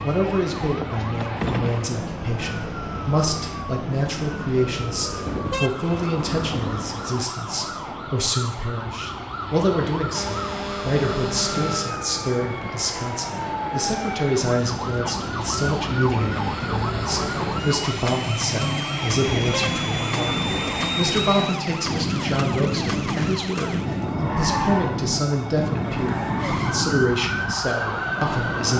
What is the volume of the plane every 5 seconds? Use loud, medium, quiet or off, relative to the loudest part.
medium, medium, medium, loud, loud, loud.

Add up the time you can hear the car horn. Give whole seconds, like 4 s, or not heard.
6 s.